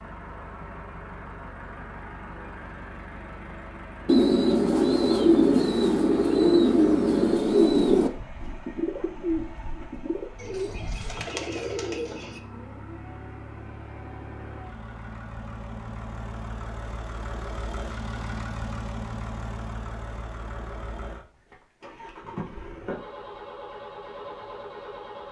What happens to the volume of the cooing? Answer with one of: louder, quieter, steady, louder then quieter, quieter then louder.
quieter.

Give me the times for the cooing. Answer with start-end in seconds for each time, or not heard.
4.0-12.4.